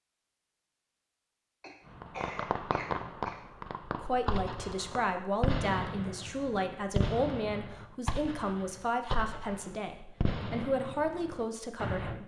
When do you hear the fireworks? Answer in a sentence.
The fireworks can be heard from 1.9 to 12.2 s.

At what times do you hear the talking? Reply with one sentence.
The talking can be heard from 4.0 to 12.2 s.